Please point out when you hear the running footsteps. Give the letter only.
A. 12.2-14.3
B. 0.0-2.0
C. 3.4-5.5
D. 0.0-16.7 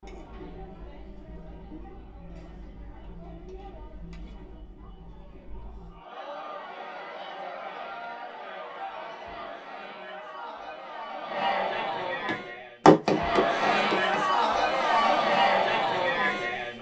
A.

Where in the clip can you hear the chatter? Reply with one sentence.
The chatter can be heard from 0.0 to 16.7 s.